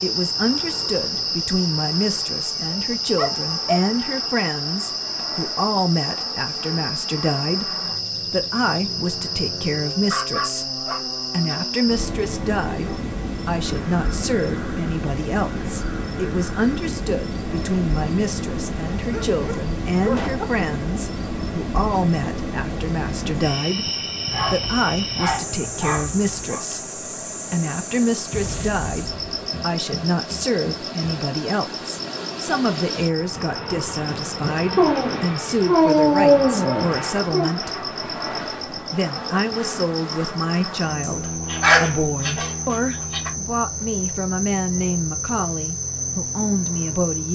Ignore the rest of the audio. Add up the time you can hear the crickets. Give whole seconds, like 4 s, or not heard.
47 s.